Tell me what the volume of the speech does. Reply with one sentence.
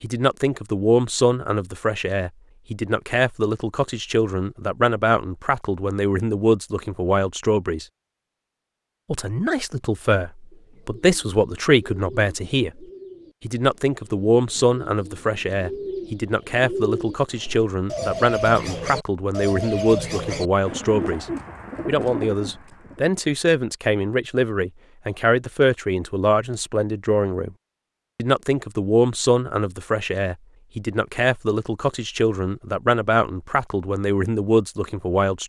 The loudness of the speech stays about the same.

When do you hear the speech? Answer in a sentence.
The speech can be heard from 0.0 to 7.8 s, from 9.1 to 21.2 s, from 21.9 to 27.5 s and from 28.1 to 35.4 s.